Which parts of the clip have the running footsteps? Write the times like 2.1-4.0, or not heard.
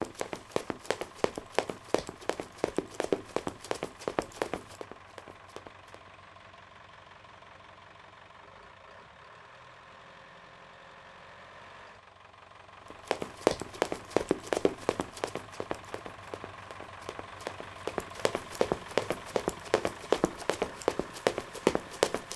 0.0-6.1, 12.9-22.3.